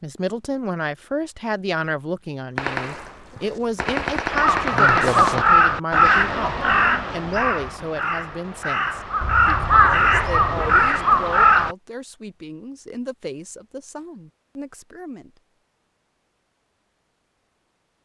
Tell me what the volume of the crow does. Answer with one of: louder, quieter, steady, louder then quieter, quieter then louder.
quieter then louder.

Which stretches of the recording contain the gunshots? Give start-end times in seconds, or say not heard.
2.5-5.5.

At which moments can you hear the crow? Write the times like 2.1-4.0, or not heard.
4.3-11.8.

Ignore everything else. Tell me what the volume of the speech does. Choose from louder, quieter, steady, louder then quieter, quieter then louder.
quieter.